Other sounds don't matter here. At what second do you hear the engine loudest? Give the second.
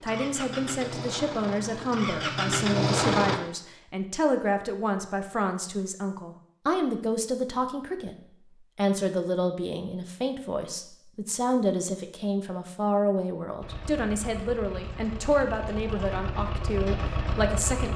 3 s.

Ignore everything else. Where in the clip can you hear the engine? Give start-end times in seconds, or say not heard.
0.0-3.4, 13.6-17.9.